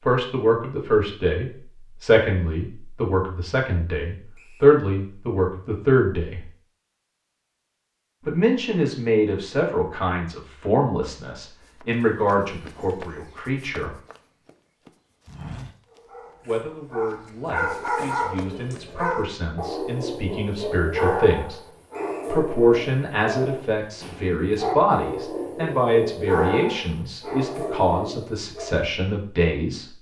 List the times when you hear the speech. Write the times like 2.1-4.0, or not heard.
0.0-6.4, 8.2-13.9, 16.4-21.6, 22.3-29.9.